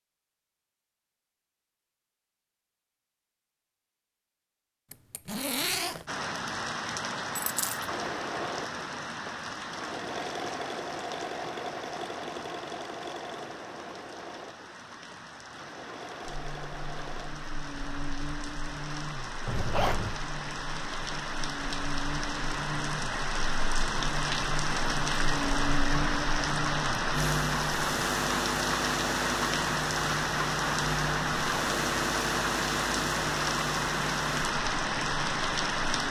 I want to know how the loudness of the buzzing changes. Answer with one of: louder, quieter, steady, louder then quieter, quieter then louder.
louder.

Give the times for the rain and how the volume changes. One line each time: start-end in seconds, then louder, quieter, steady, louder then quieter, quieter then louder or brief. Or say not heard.
6.0-36.0 quieter then louder.